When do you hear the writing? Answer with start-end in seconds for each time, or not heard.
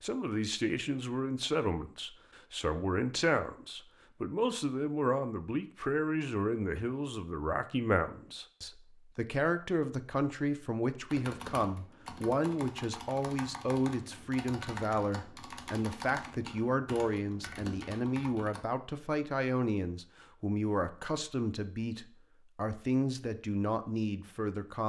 not heard.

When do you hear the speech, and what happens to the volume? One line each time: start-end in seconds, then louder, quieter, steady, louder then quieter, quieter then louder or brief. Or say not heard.
0.0-24.8 steady.